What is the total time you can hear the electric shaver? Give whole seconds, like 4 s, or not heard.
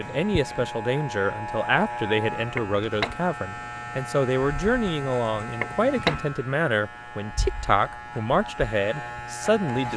10 s.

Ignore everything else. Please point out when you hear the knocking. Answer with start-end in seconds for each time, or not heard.
2.5-3.1, 5.6-6.2.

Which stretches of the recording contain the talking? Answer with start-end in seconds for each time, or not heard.
0.0-9.9.